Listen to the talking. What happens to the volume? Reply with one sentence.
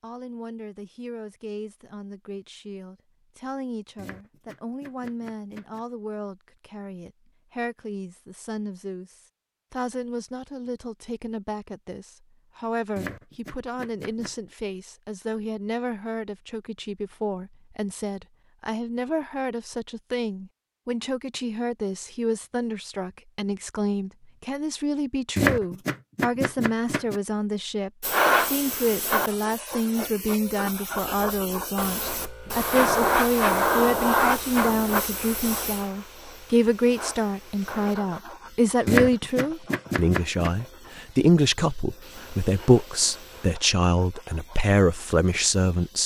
The volume of the talking goes up.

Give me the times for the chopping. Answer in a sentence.
You can hear the chopping from 4.0 to 5.8 s, from 12.9 to 14.3 s, from 25.4 to 27.2 s and from 38.9 to 40.5 s.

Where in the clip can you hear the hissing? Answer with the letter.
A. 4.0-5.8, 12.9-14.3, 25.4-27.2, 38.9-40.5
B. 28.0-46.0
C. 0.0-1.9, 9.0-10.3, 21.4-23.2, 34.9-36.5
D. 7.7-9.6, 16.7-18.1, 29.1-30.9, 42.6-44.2
B.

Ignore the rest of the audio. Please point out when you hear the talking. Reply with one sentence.
The talking can be heard from 0.0 to 46.0 s.